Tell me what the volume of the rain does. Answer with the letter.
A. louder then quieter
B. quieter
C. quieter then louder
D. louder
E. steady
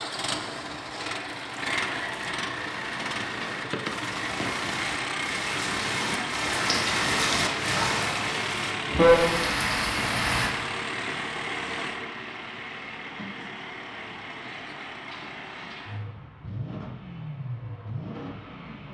D.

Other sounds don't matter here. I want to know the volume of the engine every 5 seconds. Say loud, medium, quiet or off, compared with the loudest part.
loud, loud, loud, medium.